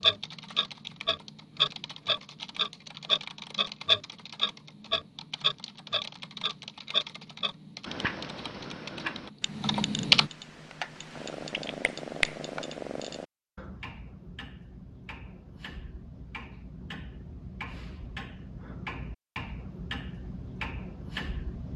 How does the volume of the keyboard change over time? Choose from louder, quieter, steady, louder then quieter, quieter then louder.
louder.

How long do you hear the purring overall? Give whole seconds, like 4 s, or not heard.
3 s.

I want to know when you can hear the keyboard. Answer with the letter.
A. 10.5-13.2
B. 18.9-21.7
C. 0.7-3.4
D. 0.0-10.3
D.